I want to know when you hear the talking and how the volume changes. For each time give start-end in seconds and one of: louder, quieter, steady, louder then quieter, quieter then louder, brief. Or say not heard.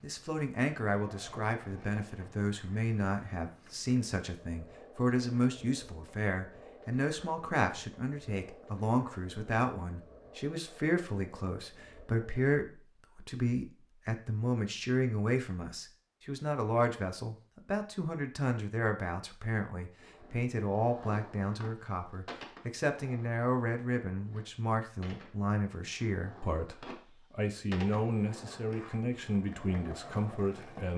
0.0-30.9 steady.